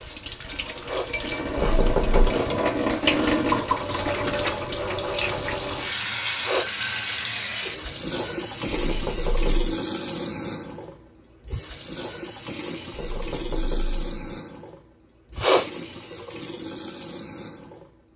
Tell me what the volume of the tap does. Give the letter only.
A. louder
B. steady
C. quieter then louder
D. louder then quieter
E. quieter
E.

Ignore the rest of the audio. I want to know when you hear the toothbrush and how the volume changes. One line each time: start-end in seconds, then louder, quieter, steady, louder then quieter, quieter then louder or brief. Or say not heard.
not heard.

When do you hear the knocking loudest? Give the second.
2 s.